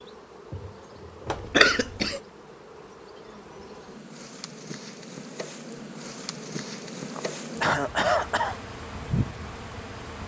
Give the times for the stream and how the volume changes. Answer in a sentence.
The stream can't be heard in this clip.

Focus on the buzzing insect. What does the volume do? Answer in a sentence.
The volume of the buzzing insect goes up.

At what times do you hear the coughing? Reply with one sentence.
The coughing can be heard from 1.3 to 2.2 s and from 7.2 to 8.6 s.